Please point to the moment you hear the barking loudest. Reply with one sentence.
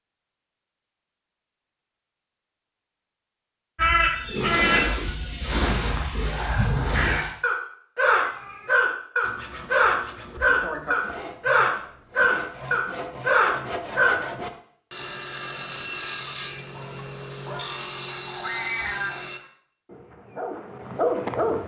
The volume of the barking peaks at 21 seconds.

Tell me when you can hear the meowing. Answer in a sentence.
The meowing can be heard from 4.1 to 5.6 s, from 8.0 to 8.9 s and from 18.4 to 19.1 s.